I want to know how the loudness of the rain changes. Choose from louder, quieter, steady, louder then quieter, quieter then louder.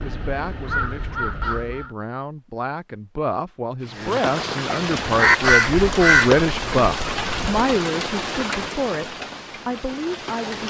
quieter.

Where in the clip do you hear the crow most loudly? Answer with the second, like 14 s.
5 s.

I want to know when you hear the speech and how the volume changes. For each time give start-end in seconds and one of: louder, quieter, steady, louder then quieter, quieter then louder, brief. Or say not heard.
0.0-10.6 louder then quieter.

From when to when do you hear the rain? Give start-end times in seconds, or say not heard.
3.8-10.6.